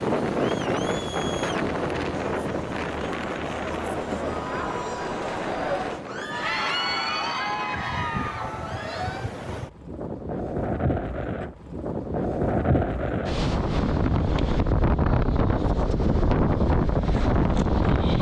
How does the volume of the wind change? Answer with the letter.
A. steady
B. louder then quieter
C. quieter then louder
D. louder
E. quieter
C.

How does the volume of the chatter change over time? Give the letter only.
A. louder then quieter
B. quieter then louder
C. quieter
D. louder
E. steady
D.